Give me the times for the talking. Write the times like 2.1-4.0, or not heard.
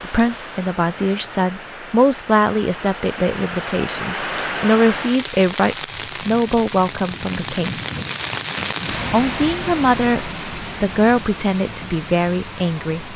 0.0-7.8, 9.1-13.1.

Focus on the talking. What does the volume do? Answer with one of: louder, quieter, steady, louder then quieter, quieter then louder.
steady.